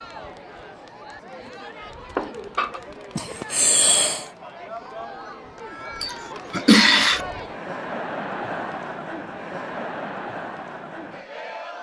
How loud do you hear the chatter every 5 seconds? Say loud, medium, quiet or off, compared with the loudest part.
medium, loud, loud.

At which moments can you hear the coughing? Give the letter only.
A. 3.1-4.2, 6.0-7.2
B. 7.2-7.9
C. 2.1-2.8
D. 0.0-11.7
A.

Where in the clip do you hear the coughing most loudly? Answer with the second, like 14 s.
7 s.